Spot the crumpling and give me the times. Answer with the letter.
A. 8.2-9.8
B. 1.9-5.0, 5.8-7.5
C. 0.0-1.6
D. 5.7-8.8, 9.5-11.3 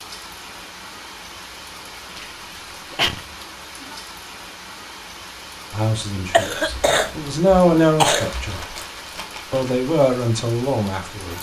A.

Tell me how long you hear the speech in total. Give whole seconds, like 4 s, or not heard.
5 s.